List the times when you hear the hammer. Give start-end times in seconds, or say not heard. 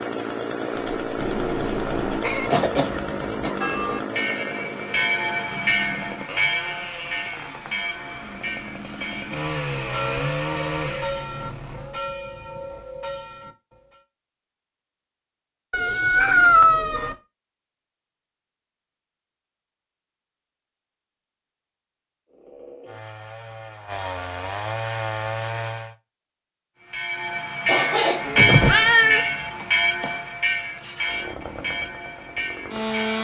not heard.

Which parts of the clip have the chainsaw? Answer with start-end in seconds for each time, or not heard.
0.0-12.0, 22.3-25.9, 31.0-33.1.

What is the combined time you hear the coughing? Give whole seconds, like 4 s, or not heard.
2 s.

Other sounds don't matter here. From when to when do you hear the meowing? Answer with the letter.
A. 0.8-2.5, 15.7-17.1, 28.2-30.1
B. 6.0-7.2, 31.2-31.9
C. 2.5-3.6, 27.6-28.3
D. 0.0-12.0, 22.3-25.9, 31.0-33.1
A.